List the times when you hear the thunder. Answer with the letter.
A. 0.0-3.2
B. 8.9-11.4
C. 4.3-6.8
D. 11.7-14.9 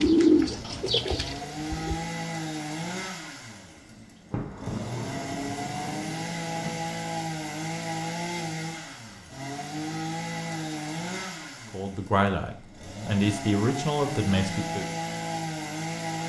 C.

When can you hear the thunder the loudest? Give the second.
5 s.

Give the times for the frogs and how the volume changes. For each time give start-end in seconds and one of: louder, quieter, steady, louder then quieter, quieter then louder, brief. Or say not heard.
not heard.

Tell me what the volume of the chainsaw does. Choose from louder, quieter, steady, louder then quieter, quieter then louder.
steady.